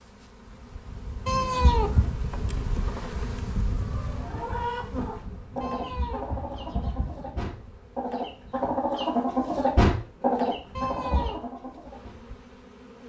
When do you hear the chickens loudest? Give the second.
10 s.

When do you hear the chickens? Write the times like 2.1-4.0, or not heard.
3.8-12.2.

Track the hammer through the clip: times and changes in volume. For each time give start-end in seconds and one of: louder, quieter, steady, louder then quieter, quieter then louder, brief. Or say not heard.
not heard.